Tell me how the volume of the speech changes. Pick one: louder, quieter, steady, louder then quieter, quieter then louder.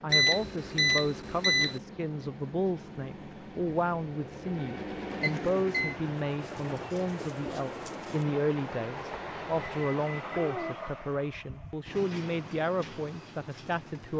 steady.